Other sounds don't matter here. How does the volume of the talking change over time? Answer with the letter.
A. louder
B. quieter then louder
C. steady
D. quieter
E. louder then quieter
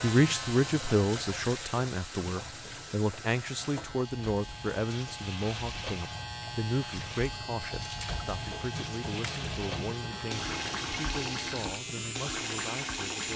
D.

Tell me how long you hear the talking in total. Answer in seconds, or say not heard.
13 s.